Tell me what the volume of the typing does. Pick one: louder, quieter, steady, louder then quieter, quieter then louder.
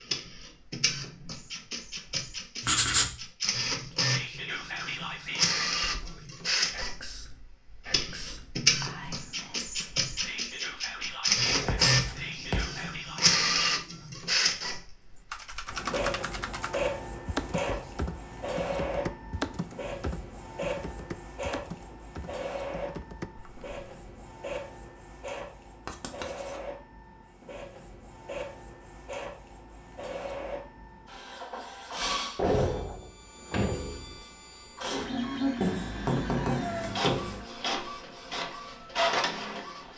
quieter.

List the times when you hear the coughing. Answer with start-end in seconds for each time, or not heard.
not heard.